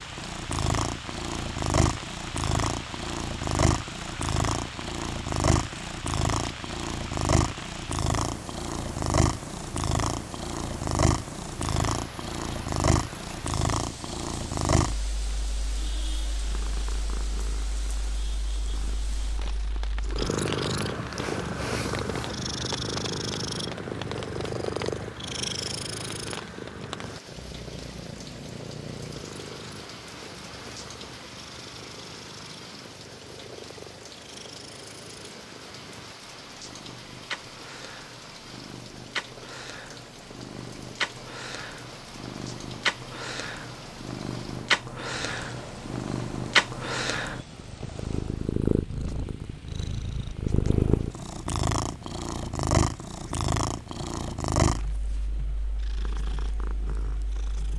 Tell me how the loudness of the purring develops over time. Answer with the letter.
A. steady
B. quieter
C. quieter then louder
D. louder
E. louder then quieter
C.